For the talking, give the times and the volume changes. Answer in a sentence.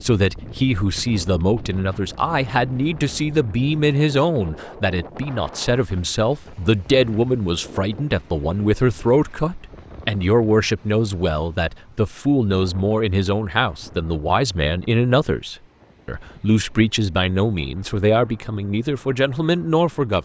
The talking can be heard from 0.0 to 20.1 s, at a steady volume.